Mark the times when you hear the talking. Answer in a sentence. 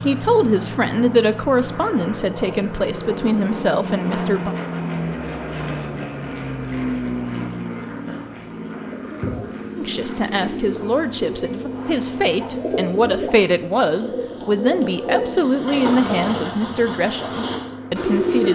You can hear the talking from 0.0 to 4.5 s and from 9.8 to 18.5 s.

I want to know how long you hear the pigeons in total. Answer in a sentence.
You can hear the pigeons for 10 seconds altogether.